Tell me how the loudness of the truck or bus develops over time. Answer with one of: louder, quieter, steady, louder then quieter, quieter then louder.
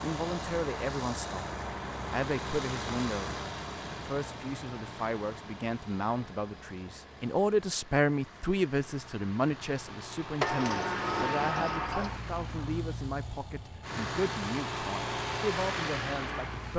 quieter then louder.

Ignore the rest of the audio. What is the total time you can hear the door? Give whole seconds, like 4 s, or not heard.
2 s.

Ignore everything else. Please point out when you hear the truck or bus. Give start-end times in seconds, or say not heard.
0.0-16.7.